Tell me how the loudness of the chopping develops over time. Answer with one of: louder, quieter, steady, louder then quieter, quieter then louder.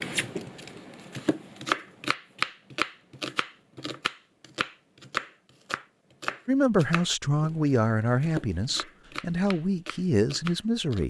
quieter.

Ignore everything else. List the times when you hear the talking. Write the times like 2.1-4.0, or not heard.
6.5-11.0.